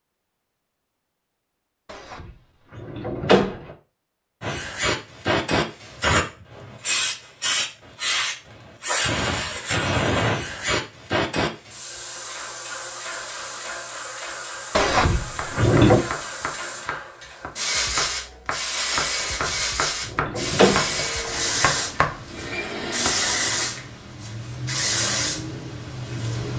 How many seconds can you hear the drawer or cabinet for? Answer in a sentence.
The drawer or cabinet can be heard for 5 seconds in total.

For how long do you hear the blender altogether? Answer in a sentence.
You can hear the blender for 3 seconds altogether.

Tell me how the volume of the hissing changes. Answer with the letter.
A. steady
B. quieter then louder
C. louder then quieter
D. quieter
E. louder
B.